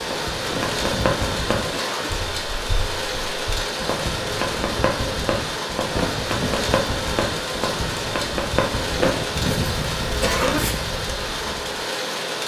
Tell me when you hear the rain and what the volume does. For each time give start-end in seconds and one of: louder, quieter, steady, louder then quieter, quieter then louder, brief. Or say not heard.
0.0-12.4 steady.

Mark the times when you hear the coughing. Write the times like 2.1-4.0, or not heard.
0.5-2.2, 6.0-6.6, 8.9-10.8.